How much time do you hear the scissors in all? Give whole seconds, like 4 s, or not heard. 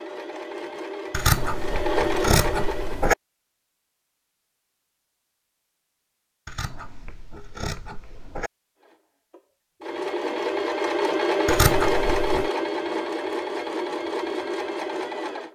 5 s.